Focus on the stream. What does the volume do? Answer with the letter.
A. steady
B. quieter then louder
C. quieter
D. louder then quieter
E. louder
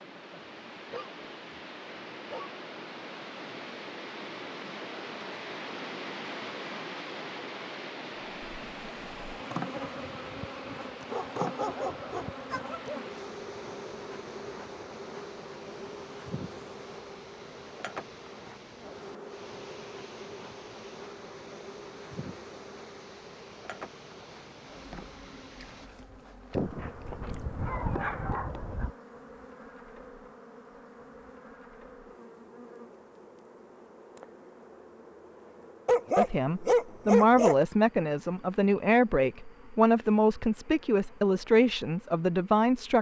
C.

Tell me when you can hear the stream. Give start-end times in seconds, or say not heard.
0.0-25.9.